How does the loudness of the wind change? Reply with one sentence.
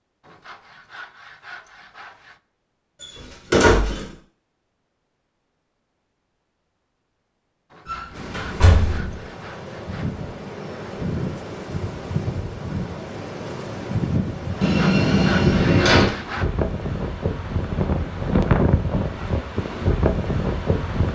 The volume of the wind goes up.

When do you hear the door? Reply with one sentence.
You can hear the door from 3.0 to 4.1 s, from 7.8 to 9.1 s and from 14.6 to 16.1 s.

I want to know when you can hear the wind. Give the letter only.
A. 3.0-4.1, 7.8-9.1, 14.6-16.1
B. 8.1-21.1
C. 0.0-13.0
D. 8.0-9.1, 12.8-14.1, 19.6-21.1
B.